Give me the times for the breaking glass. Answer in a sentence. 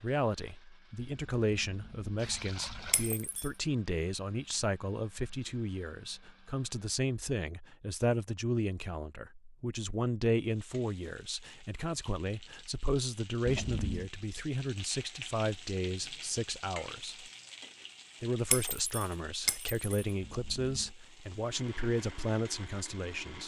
The breaking glass can be heard from 2.9 to 3.5 s and from 18.5 to 19.9 s.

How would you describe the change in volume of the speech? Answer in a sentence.
The volume of the speech stays about the same.